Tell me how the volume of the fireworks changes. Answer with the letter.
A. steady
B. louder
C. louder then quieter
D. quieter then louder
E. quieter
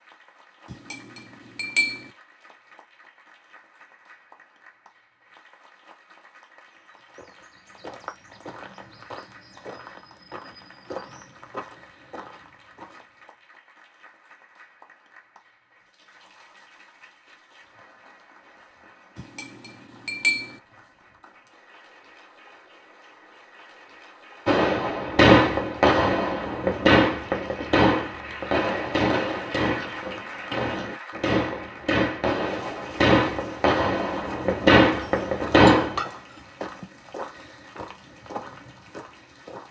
D.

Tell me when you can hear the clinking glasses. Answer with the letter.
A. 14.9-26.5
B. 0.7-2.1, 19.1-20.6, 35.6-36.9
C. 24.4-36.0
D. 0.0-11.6
B.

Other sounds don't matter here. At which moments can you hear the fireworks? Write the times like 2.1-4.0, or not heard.
24.4-36.0.